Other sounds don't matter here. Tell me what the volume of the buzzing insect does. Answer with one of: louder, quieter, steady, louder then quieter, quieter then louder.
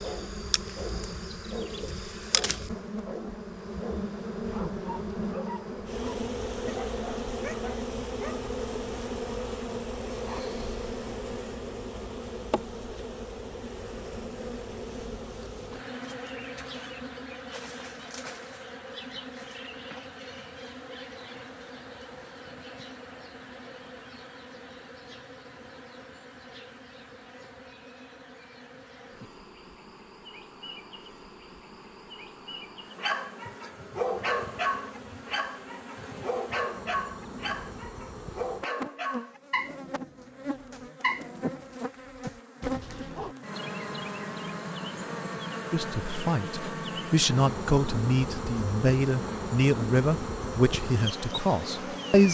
quieter then louder.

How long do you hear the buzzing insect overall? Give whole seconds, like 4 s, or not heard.
52 s.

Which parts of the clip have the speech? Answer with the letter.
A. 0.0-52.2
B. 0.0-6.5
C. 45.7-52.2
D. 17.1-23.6
C.